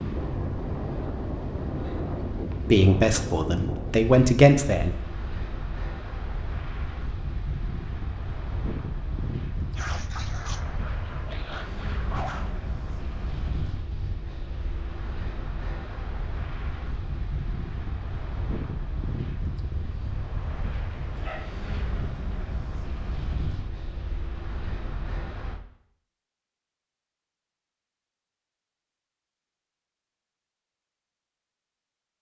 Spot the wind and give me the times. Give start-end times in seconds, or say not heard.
0.0-25.6.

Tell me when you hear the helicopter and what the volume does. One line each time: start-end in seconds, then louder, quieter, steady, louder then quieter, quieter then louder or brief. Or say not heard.
not heard.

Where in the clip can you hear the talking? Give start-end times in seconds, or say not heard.
2.7-4.9.